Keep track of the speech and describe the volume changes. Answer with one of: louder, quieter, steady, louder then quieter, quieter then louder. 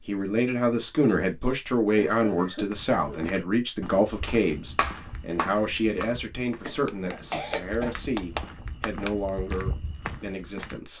quieter.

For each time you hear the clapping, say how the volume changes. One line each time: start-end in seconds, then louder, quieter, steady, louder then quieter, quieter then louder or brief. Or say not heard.
4.2-9.2 quieter then louder.